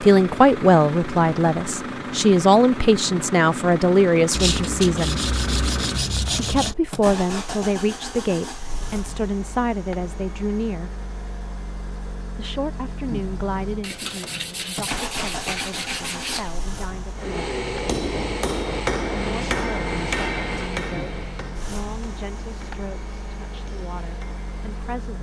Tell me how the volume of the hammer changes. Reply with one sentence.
The loudness of the hammer goes down.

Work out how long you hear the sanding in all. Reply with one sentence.
The sanding can be heard for 5 seconds in total.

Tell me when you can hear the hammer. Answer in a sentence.
You can hear the hammer from 17.1 to 24.9 s.